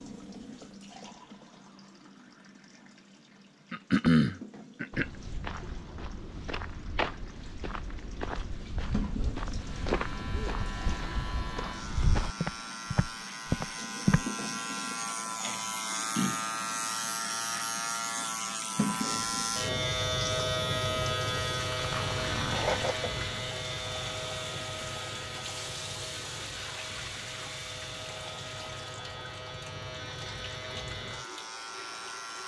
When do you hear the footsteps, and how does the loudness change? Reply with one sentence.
You can hear the footsteps from 4.9 to 14.2 s, getting louder.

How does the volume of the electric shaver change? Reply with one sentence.
The volume of the electric shaver goes up, then down.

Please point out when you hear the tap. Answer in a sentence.
You can hear the tap from 0.0 to 32.4 s.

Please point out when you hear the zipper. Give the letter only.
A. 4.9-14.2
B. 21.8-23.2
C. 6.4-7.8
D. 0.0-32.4
B.